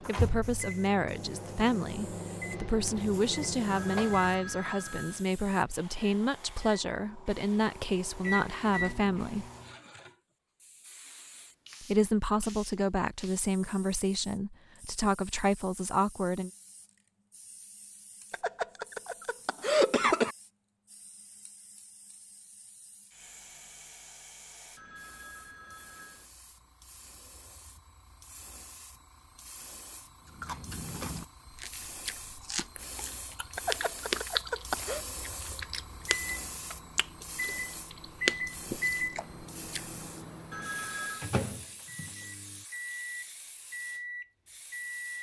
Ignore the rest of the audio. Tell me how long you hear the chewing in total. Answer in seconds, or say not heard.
10 s.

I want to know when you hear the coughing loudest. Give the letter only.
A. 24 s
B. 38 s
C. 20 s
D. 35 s
C.